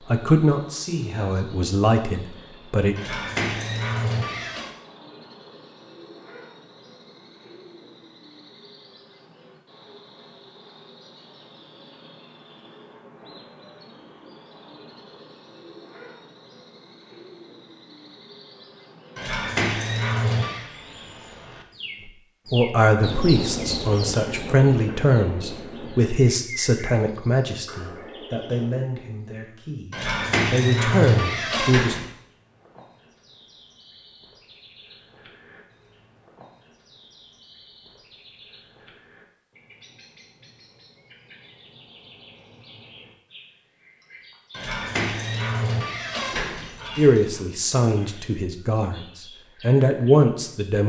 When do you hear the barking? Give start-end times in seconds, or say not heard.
3.0-4.7, 19.1-20.6, 29.9-32.0, 44.5-47.4.